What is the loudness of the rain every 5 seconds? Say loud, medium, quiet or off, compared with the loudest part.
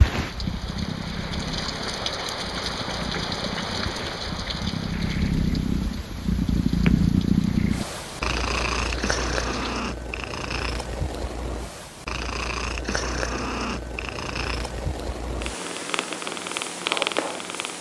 loud, medium, off, off.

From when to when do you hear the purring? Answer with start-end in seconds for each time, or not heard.
0.0-17.7.